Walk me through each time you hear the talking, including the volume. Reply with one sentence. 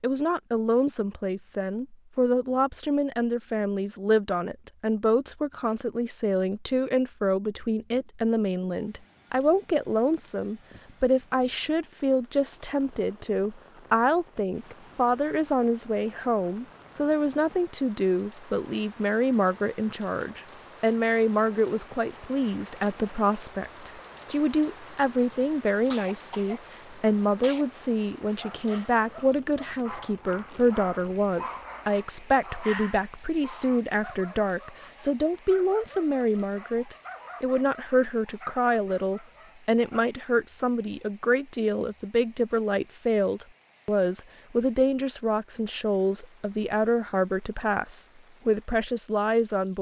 The talking can be heard from 0.0 to 49.7 s, at a steady volume.